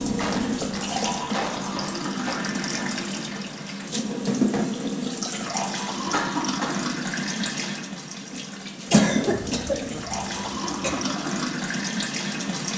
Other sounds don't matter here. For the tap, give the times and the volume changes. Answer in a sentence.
The tap can be heard from 0.0 to 12.7 s, at a steady volume.